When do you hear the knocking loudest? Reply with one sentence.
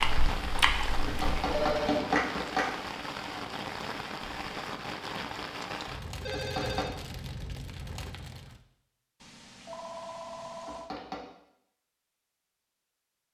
The loudest moment of the knocking is at 2 seconds.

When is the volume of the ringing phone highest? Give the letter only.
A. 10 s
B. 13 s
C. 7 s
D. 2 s
D.